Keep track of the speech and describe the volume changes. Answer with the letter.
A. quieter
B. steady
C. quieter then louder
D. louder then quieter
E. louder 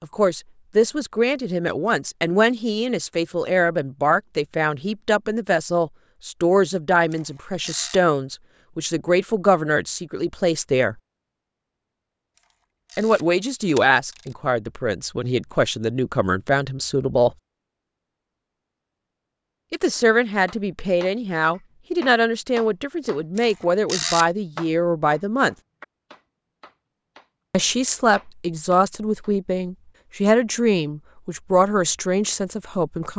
B.